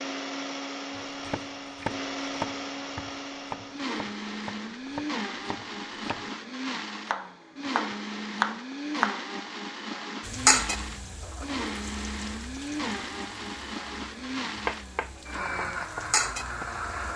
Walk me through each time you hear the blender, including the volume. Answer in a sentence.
You can hear the blender from 0.0 to 17.1 s, at a steady volume.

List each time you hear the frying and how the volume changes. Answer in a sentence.
You can hear the frying from 10.2 to 17.1 s, getting quieter then louder.